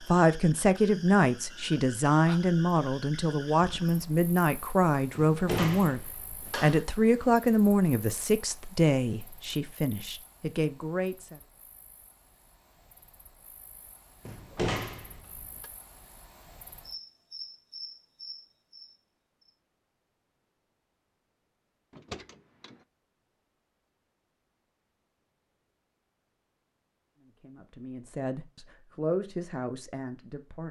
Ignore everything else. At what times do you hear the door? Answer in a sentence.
The door can be heard from 5.3 to 6.8 s, from 14.2 to 15.7 s and from 21.9 to 22.8 s.